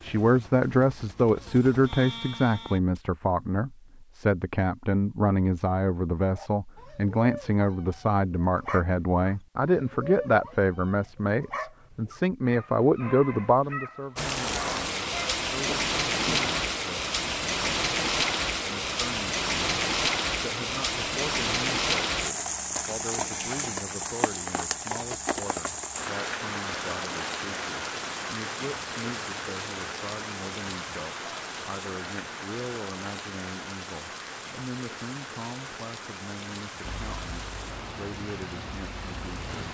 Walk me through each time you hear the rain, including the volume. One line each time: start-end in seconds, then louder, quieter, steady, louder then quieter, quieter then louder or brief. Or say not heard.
14.2-39.6 quieter.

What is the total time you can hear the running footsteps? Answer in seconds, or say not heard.
not heard.